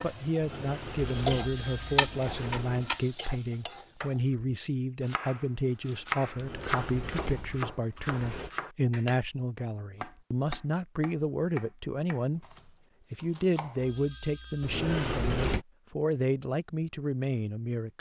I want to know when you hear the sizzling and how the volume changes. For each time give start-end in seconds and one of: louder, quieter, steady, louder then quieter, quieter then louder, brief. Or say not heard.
0.0-4.3 louder then quieter.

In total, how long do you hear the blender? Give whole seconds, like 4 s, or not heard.
not heard.